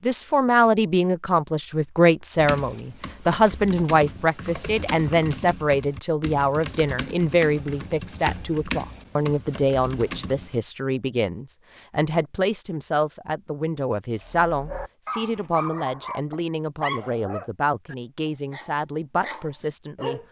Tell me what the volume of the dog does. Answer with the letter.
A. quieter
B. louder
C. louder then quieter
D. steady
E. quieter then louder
E.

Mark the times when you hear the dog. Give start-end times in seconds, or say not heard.
14.2-20.2.